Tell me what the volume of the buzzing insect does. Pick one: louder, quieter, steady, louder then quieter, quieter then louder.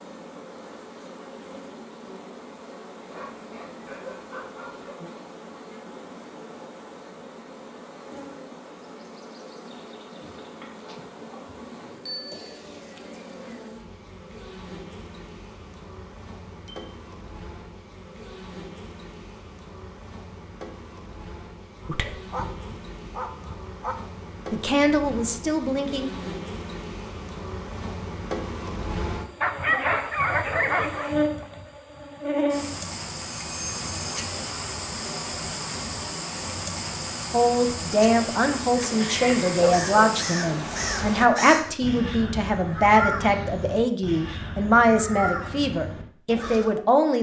louder.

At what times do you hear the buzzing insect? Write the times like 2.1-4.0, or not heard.
0.0-41.2.